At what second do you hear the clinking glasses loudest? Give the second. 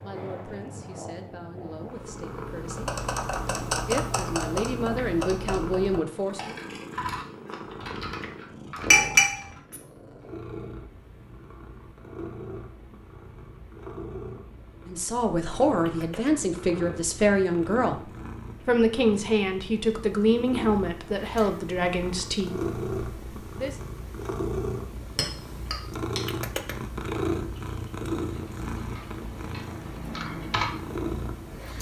9 s.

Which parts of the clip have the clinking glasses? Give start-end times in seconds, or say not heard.
8.9-9.8, 25.1-26.2.